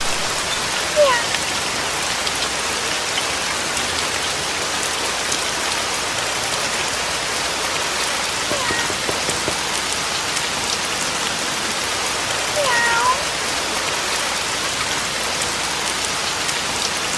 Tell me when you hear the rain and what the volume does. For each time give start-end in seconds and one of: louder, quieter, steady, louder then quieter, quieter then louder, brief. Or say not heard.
0.0-17.1 steady.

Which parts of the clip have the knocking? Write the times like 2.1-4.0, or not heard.
8.4-9.6.